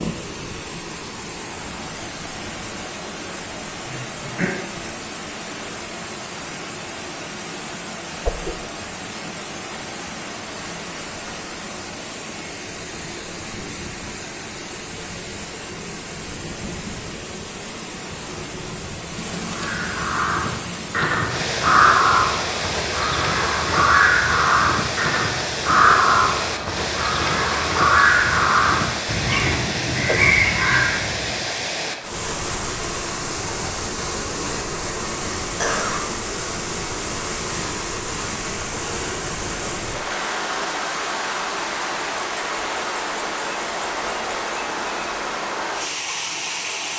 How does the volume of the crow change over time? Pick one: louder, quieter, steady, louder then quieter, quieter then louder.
steady.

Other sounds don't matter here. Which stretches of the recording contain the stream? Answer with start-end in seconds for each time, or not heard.
0.0-46.9.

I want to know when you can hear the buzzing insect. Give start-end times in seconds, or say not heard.
not heard.